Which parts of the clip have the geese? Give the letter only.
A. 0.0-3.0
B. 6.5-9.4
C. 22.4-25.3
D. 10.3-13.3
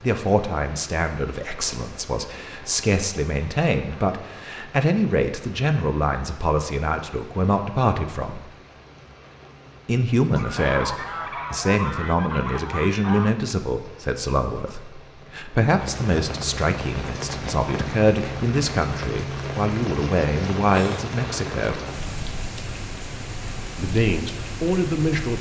D.